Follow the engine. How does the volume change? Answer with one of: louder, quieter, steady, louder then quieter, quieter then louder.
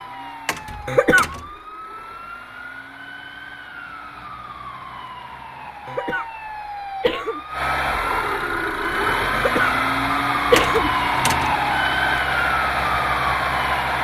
louder.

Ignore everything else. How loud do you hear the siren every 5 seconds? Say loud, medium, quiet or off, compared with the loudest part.
quiet, medium, loud.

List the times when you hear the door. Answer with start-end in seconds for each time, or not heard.
0.5-1.5, 10.6-11.6.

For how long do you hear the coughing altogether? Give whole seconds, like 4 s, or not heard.
2 s.